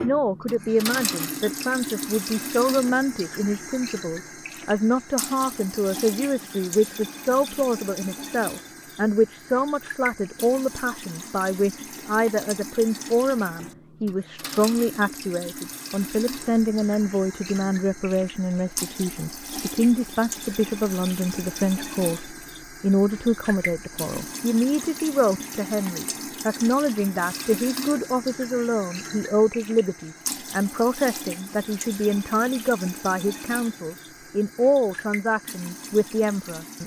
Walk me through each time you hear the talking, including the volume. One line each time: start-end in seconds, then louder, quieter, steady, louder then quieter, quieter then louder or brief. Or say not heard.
0.0-36.8 steady.